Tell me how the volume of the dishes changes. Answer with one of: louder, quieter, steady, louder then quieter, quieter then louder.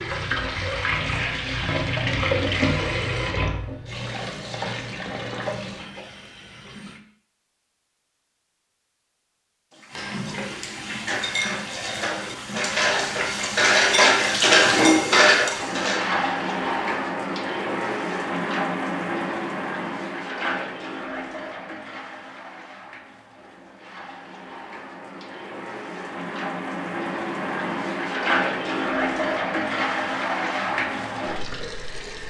louder.